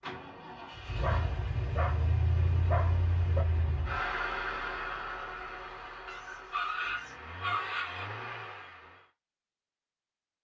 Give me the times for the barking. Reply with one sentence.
You can hear the barking from 1.0 to 3.5 s and from 6.0 to 8.1 s.